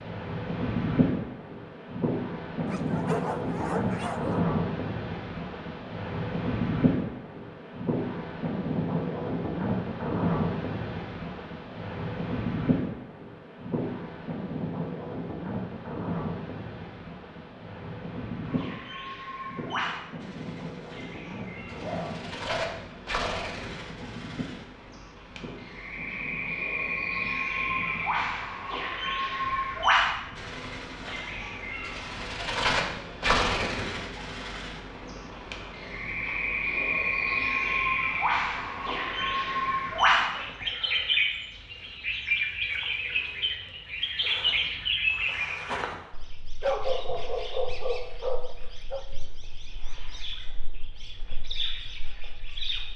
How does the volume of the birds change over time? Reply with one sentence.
The volume of the birds goes up, then down.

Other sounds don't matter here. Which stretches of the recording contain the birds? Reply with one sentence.
The birds can be heard from 18.4 to 52.9 s.